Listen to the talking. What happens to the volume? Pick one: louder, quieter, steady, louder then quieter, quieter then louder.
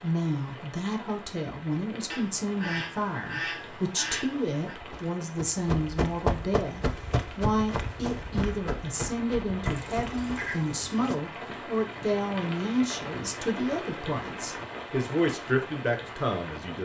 steady.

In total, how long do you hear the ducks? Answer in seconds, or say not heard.
4 s.